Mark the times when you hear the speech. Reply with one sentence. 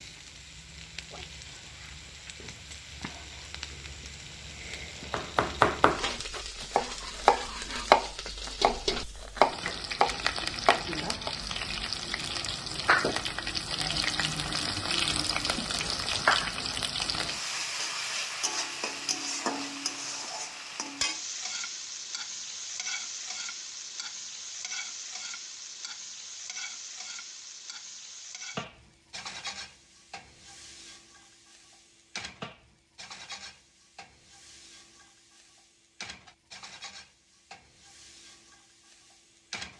You can't hear the speech here.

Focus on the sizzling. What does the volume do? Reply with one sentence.
The volume of the sizzling goes up, then down.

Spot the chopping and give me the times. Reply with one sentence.
The chopping can be heard from 5.1 to 11.3 s.